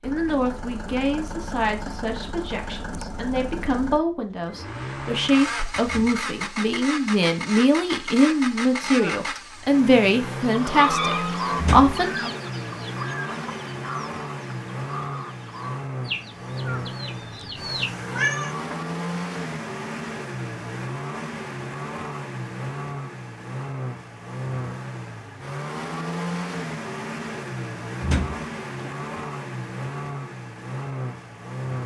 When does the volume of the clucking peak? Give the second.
11 s.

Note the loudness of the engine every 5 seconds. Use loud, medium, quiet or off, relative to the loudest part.
medium, loud, loud, loud, loud, loud, loud.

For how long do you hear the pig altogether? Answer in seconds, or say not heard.
not heard.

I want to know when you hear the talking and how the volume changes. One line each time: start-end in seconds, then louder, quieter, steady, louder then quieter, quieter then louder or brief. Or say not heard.
0.0-12.3 louder.